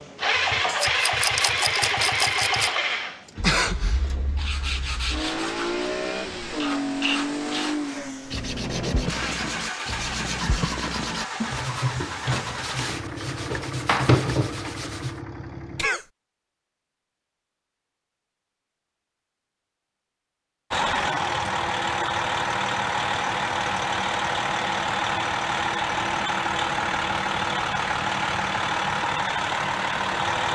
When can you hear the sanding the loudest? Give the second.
14 s.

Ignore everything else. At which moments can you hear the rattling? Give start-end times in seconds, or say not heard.
0.8-2.8.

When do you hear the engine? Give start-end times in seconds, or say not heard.
0.0-15.9, 20.7-30.5.